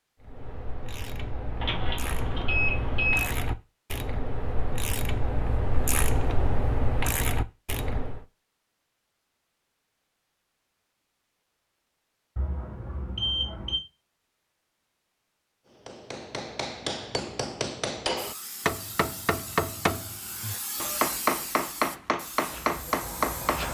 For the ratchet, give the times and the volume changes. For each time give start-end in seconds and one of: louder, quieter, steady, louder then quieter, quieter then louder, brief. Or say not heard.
0.2-8.2 louder.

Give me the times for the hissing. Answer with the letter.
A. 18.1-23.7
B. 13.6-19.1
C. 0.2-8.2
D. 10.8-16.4
A.